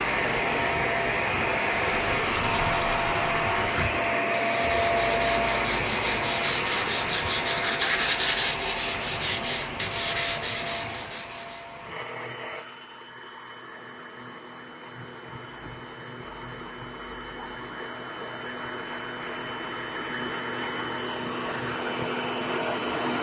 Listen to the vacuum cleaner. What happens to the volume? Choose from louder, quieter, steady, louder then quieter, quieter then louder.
quieter then louder.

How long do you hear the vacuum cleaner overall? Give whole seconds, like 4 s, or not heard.
23 s.